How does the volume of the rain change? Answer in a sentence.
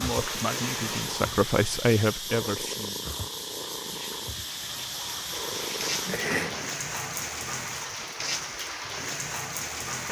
The loudness of the rain goes down, then up.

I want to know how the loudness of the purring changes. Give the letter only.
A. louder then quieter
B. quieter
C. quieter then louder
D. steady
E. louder
D.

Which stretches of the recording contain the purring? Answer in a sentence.
You can hear the purring from 0.0 to 6.7 s.